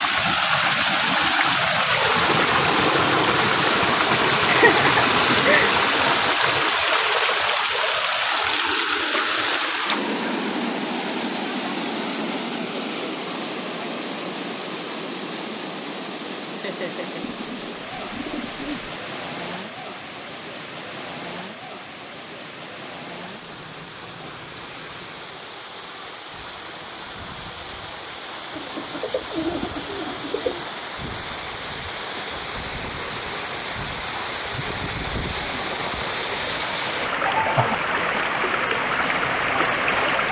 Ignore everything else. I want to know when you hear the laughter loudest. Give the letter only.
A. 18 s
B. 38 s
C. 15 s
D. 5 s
D.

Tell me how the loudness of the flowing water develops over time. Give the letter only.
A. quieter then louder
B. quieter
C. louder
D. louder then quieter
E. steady
A.